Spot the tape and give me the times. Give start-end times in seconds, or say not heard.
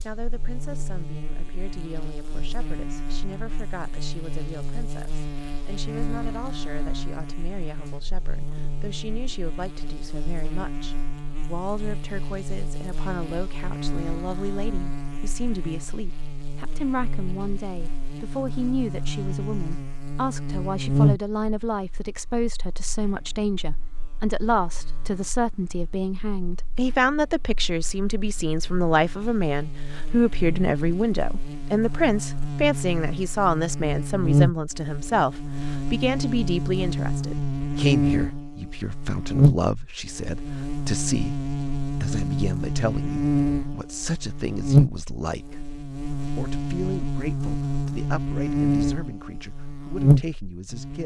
not heard.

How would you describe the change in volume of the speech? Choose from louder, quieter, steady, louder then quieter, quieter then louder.
louder then quieter.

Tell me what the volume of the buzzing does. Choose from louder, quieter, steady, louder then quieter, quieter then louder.
louder.